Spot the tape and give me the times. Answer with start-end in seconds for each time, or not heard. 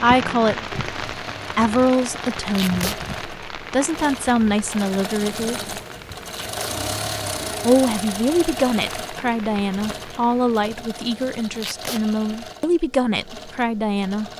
2.5-3.0, 6.3-6.8, 11.6-12.0.